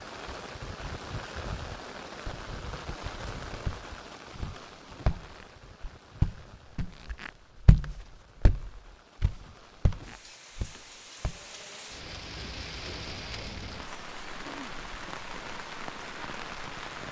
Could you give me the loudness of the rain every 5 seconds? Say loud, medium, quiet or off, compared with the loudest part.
loud, quiet, loud, loud.